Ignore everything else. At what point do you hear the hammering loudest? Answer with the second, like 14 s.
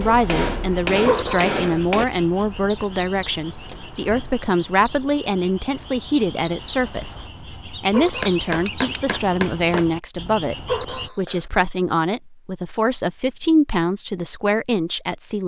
1 s.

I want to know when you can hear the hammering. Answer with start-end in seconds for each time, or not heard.
0.2-2.0, 8.2-9.8.